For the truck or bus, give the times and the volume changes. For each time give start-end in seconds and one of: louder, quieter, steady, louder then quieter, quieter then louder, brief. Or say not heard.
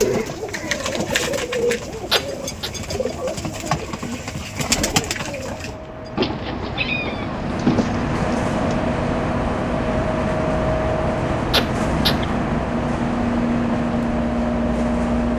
0.2-15.3 louder.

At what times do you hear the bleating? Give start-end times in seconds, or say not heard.
not heard.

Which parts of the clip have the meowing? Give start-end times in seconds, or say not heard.
2.1-2.7, 6.2-7.9, 11.5-12.4.